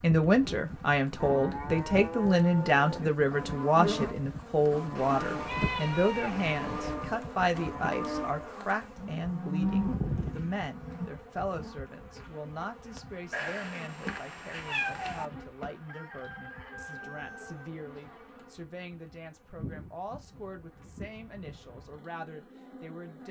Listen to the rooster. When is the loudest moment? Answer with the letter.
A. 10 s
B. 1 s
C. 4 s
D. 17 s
D.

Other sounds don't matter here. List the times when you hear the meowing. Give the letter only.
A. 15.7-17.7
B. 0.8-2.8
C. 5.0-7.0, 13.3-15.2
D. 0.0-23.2
C.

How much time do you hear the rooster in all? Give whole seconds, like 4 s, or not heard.
2 s.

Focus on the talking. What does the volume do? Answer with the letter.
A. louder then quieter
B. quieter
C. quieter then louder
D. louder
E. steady
B.